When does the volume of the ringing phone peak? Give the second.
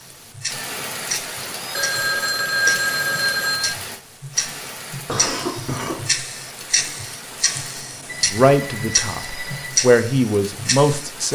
3 s.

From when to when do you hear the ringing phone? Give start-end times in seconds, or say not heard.
1.8-3.8, 8.1-9.7.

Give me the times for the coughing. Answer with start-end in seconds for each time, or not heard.
5.0-6.0.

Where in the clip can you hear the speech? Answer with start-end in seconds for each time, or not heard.
8.3-11.3.